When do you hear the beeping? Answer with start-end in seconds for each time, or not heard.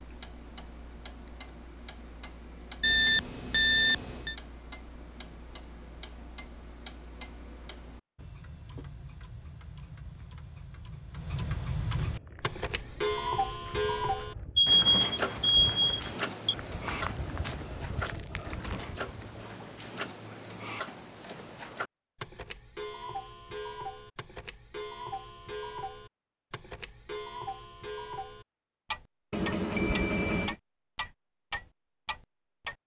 2.8-4.3, 14.6-16.6, 29.3-30.6.